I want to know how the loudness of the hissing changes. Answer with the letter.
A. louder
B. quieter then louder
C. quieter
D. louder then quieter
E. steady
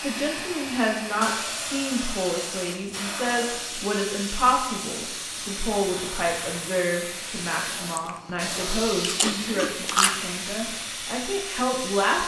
E.